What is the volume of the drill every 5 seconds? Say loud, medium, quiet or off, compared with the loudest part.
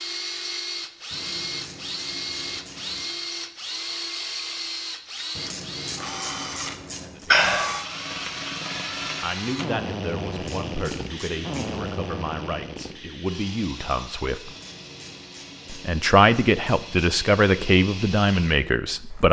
loud, loud, loud, medium.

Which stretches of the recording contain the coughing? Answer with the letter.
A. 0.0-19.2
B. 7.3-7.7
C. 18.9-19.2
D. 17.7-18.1
B.